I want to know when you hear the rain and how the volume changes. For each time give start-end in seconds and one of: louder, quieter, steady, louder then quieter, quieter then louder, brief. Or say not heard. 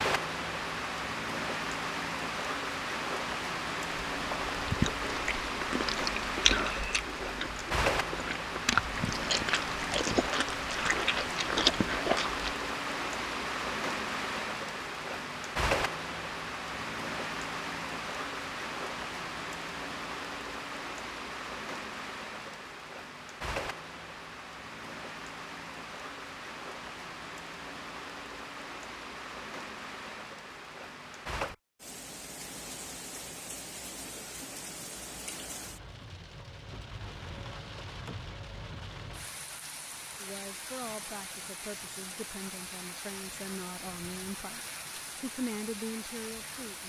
0.0-46.8 quieter.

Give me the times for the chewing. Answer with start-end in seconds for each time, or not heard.
3.9-12.4.